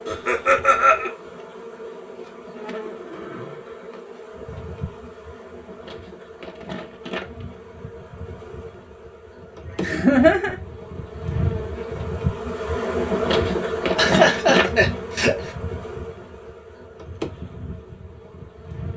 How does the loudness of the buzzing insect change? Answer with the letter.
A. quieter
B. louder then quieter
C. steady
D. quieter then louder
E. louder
B.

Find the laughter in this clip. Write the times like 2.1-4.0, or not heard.
0.1-1.1, 9.8-10.6, 13.9-15.5.